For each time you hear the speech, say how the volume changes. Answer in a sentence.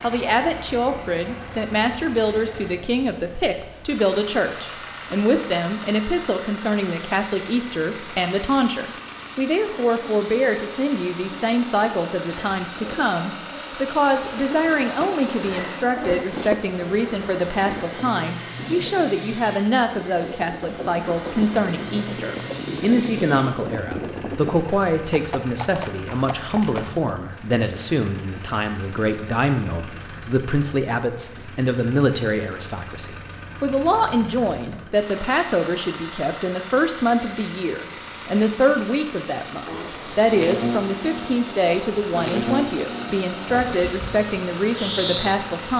The speech can be heard from 0.0 to 45.7 s, at a steady volume.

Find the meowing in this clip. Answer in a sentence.
The meowing can't be heard in this clip.